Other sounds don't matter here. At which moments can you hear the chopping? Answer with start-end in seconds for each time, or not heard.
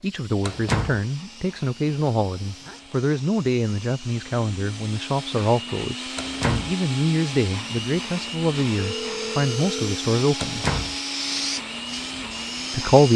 not heard.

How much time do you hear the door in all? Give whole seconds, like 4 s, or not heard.
2 s.